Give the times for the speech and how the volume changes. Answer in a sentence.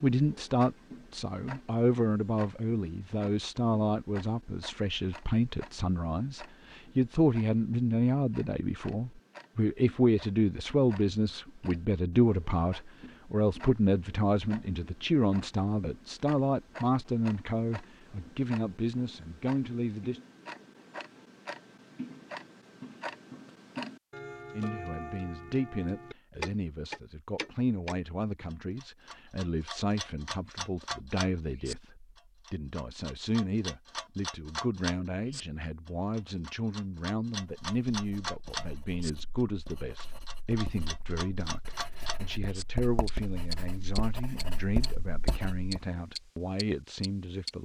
The speech can be heard from 0.0 to 20.2 s, at a steady volume; and from 24.5 to 47.5 s, at a steady volume.